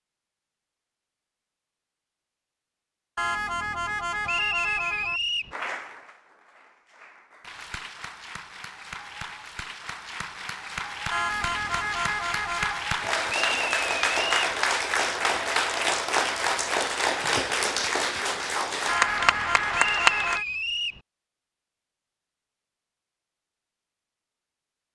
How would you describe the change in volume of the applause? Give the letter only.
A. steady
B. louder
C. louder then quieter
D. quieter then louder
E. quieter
B.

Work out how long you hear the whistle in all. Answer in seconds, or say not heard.
4 s.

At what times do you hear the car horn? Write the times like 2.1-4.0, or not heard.
3.1-5.2, 11.1-12.9, 18.9-20.4.